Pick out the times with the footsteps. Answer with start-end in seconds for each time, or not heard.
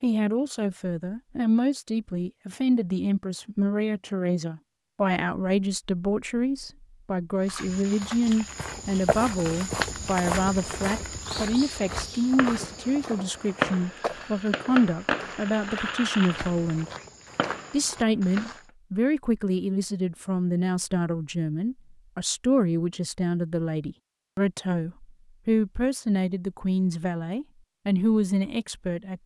7.5-18.6.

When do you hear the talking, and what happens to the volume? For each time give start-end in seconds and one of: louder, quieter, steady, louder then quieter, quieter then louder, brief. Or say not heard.
0.0-16.9 steady
17.7-29.2 steady.